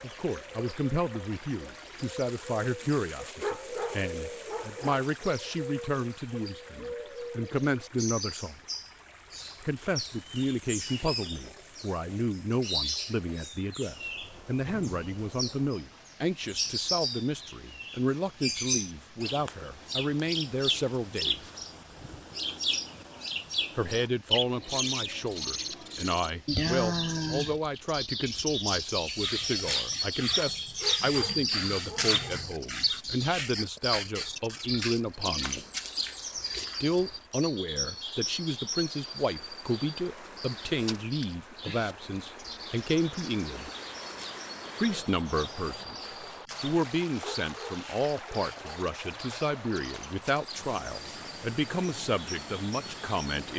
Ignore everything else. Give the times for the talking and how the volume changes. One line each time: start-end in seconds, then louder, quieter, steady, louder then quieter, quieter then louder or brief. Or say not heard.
0.0-8.6 steady
9.6-21.5 steady
23.8-35.6 steady
36.8-43.7 steady
44.8-53.5 steady.